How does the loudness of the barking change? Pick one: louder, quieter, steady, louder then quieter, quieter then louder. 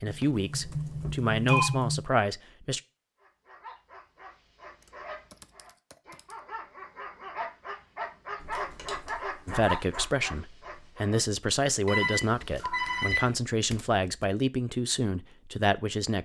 louder.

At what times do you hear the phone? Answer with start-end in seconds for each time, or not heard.
0.6-1.7, 8.6-9.1, 11.8-13.3.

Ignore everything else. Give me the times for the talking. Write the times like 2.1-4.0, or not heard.
0.0-2.8, 9.4-16.1.